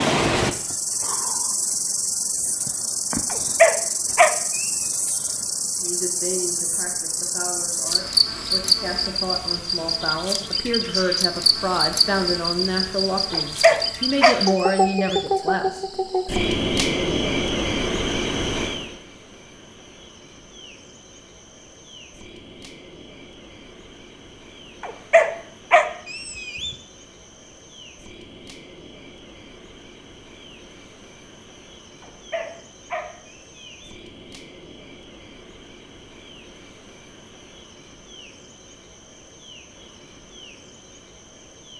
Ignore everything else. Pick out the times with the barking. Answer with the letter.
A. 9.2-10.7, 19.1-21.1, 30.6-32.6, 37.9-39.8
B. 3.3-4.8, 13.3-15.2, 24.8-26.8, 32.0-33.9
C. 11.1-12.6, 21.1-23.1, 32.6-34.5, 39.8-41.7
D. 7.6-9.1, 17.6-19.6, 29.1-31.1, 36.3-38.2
B.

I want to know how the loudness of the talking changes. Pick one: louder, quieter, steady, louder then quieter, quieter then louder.
louder.